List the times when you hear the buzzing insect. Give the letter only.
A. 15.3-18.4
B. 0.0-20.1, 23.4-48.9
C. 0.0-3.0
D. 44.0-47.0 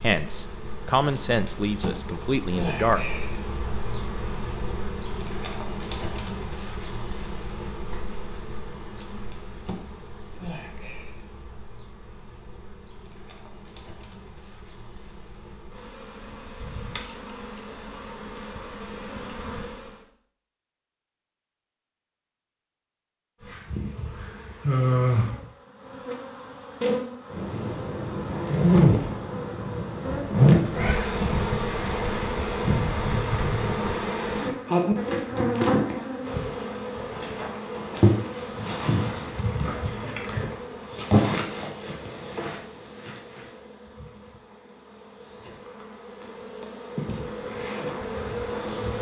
B.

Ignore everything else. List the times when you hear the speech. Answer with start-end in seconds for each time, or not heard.
0.0-3.0.